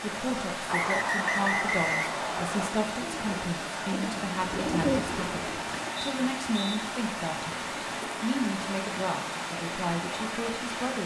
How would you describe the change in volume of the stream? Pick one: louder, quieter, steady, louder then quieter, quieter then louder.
steady.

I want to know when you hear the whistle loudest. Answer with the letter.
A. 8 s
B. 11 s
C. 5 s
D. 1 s
D.